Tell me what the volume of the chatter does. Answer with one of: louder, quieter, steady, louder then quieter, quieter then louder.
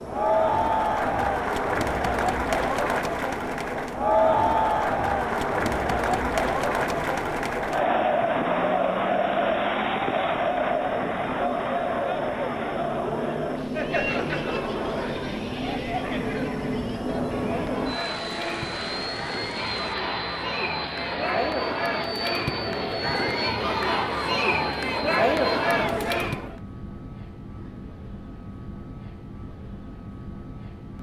quieter then louder.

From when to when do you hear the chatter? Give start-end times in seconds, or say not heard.
0.0-26.6.